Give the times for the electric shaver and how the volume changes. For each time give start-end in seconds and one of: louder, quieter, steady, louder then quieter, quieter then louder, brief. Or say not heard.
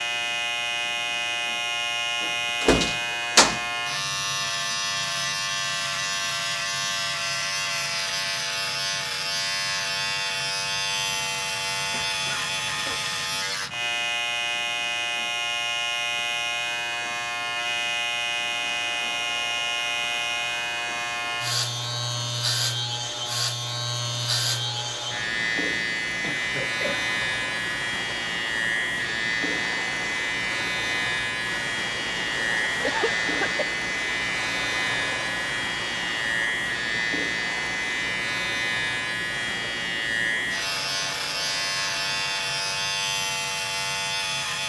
0.0-44.6 steady.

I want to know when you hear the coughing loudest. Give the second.
33 s.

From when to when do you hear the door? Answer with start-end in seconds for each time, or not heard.
2.2-3.6.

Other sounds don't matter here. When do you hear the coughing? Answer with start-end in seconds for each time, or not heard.
11.9-13.1, 26.2-27.0, 32.8-33.6.